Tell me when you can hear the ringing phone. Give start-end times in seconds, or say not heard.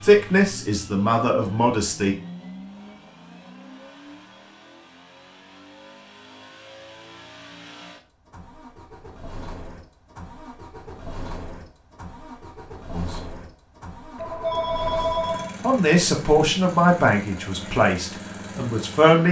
14.2-15.6.